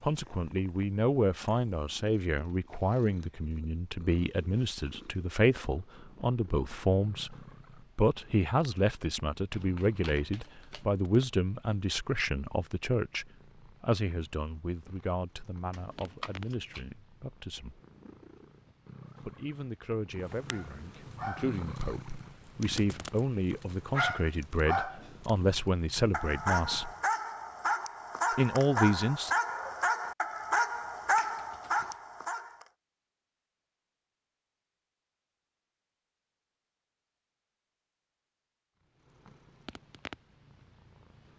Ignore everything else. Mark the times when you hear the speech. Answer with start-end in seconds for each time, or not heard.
0.0-7.3, 8.0-17.8, 19.2-26.9, 28.4-29.3.